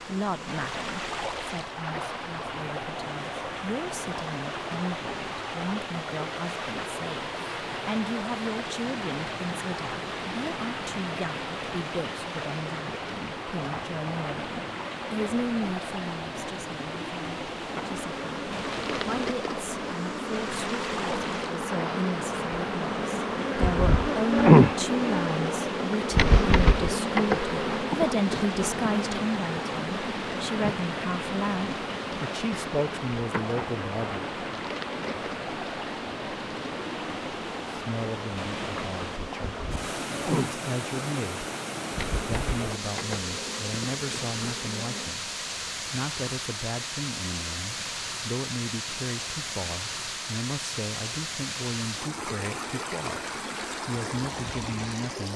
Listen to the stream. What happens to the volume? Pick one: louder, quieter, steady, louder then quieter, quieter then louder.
steady.